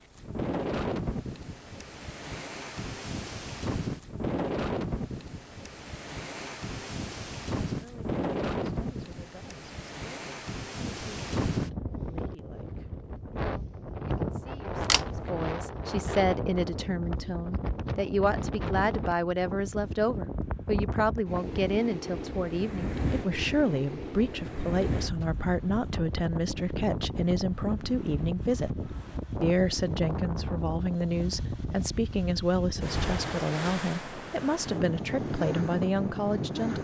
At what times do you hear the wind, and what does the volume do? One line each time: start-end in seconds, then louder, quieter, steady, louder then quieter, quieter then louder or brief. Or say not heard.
0.0-36.7 steady.